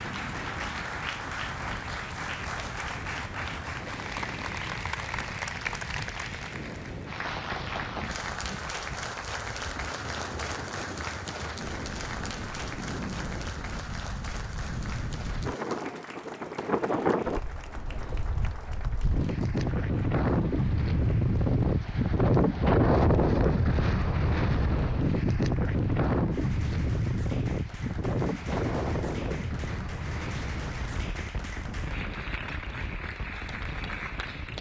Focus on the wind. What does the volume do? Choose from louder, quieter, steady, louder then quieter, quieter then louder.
louder then quieter.